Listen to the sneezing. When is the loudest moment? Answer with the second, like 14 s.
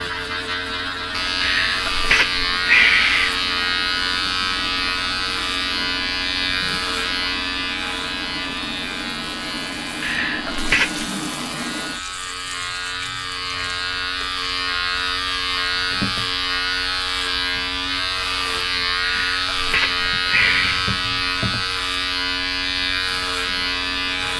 3 s.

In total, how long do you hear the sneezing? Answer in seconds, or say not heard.
5 s.